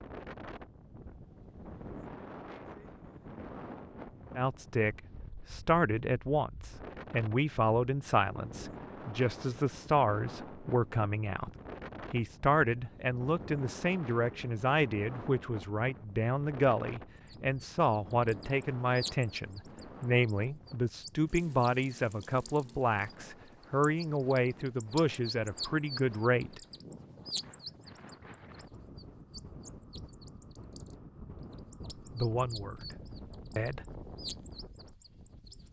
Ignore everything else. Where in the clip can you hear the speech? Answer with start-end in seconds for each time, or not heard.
4.3-11.5, 12.1-26.6, 32.1-33.8.